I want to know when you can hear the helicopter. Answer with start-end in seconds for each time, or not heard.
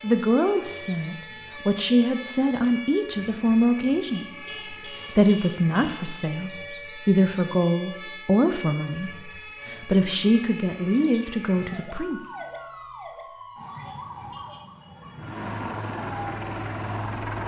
15.2-17.4.